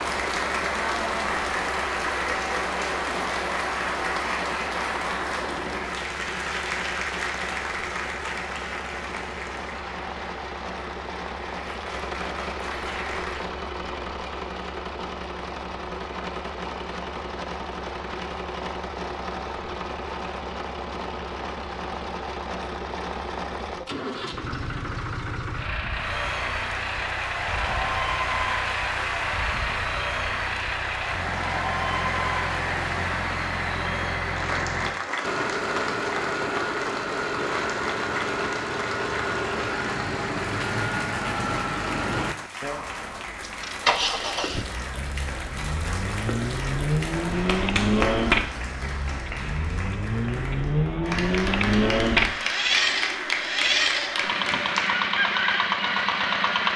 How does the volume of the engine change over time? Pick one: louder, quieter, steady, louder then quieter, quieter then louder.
louder.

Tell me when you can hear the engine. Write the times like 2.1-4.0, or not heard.
0.0-56.7.